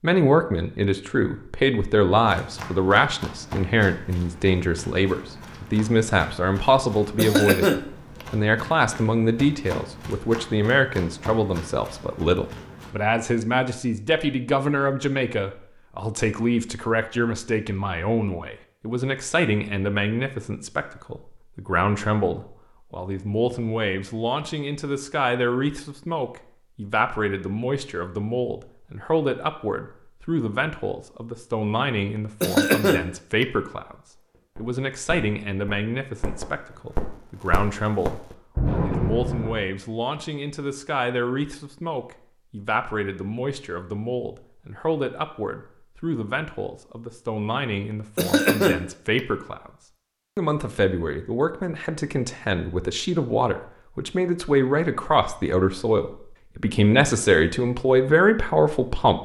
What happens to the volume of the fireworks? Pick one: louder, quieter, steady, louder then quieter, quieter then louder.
louder.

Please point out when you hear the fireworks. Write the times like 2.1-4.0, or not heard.
34.5-39.6.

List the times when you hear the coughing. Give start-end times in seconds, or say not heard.
7.2-8.2, 32.4-33.5, 48.1-49.2.